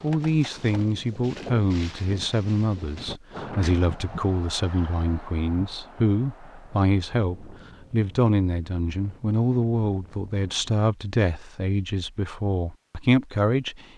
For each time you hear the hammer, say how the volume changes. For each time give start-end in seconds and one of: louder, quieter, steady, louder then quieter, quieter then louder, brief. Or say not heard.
not heard.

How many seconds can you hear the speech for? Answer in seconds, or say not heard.
14 s.